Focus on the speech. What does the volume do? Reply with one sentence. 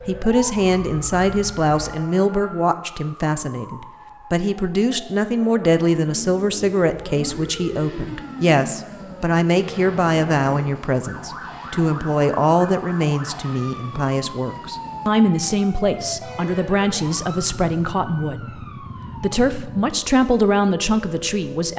The volume of the speech stays about the same.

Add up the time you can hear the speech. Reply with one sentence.
The speech can be heard for 22 seconds in total.